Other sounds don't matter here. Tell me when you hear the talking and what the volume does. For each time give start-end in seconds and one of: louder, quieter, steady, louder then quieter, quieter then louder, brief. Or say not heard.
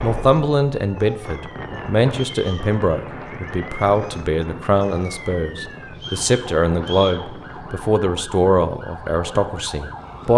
0.0-10.3 steady.